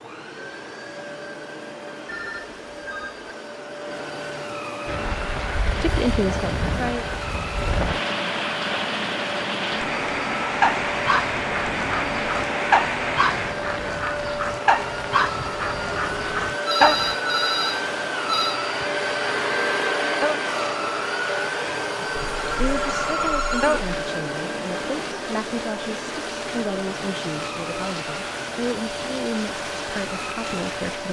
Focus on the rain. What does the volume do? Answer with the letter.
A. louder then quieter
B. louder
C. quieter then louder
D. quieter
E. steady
D.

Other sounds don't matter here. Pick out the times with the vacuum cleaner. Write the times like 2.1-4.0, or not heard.
0.0-31.0.